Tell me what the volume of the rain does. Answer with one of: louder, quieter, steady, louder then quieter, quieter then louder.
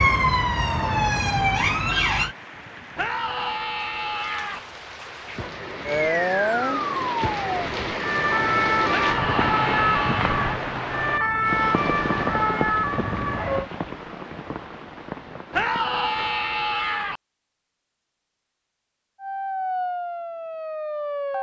louder then quieter.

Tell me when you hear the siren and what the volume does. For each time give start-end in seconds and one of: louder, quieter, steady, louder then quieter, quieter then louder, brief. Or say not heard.
0.0-2.4 brief
5.8-13.7 steady
19.1-21.3 brief.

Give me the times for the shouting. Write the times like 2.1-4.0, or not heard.
3.0-4.6, 8.9-10.4, 15.5-17.2.